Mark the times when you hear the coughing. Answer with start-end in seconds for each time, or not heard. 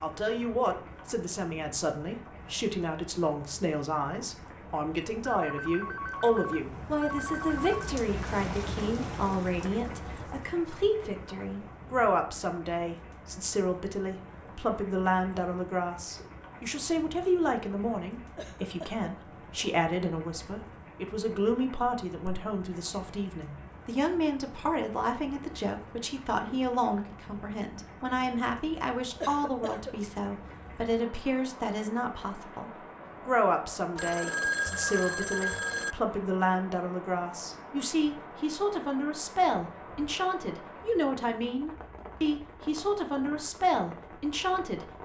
18.4-19.1, 29.2-29.9.